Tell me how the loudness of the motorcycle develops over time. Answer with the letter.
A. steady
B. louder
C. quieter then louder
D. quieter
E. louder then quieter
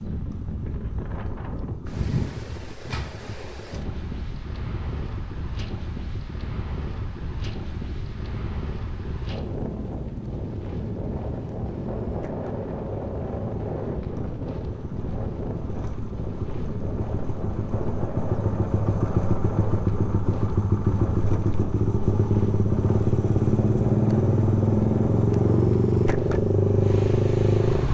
B.